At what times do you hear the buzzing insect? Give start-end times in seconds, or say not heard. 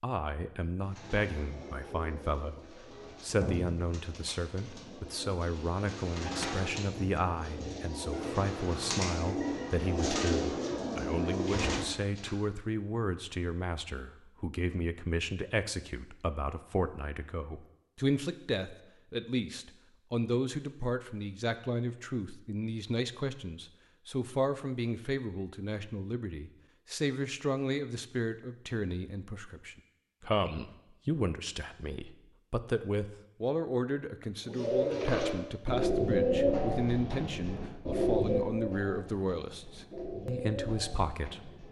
not heard.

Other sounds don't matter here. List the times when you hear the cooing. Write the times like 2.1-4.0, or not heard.
0.8-12.3, 34.5-41.6.